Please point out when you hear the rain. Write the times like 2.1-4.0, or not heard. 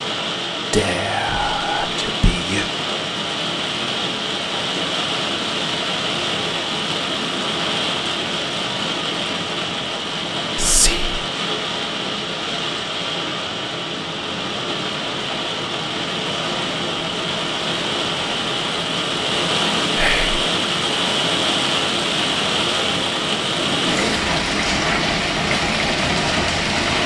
0.0-27.0.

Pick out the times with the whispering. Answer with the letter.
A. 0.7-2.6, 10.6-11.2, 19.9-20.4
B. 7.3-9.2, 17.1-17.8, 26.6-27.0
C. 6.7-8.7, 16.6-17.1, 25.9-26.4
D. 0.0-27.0
A.